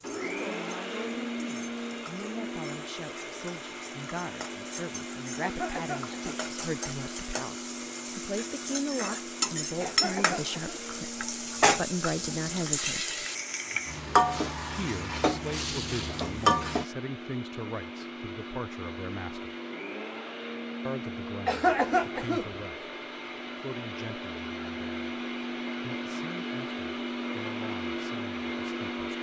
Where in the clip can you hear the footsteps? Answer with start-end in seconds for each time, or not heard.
not heard.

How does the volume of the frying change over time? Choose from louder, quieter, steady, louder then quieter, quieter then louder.
louder.